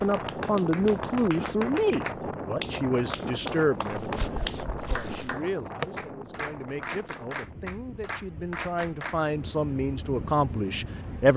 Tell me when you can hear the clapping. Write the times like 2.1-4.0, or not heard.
0.0-9.2.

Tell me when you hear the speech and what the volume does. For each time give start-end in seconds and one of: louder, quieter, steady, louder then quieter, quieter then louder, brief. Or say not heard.
0.0-11.3 quieter then louder.